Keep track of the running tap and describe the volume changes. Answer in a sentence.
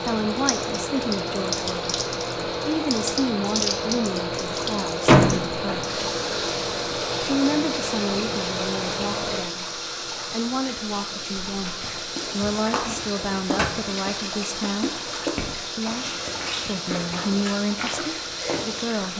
The volume of the running tap stays about the same.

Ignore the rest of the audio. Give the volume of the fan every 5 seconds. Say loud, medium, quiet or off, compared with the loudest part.
loud, loud, quiet, quiet.